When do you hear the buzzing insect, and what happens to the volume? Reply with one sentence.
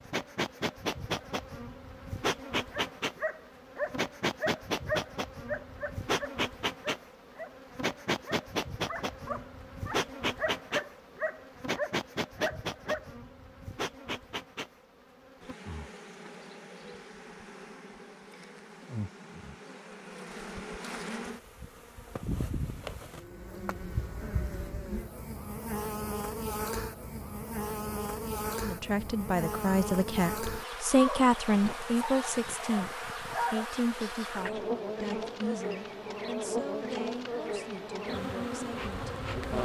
You can hear the buzzing insect from 0.0 to 39.6 s, getting quieter then louder.